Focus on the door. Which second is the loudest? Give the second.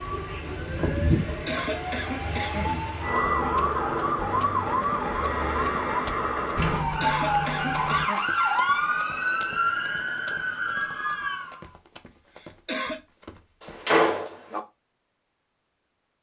14 s.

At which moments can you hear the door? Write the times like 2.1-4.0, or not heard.
0.8-1.6, 6.5-8.1, 13.6-14.6.